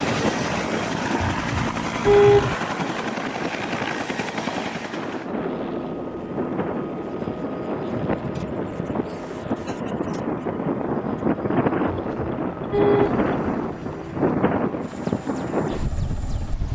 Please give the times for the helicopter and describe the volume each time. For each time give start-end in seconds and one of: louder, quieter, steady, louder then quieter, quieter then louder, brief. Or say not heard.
0.0-16.6 quieter.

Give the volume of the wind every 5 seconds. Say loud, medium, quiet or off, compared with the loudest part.
medium, medium, loud, loud.